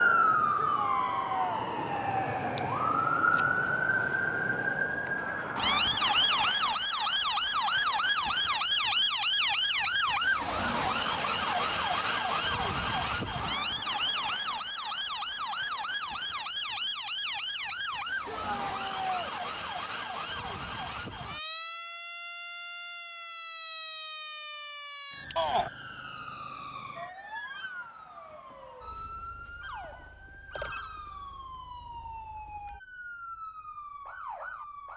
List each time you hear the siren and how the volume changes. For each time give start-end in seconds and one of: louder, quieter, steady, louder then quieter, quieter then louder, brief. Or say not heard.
0.0-34.9 quieter.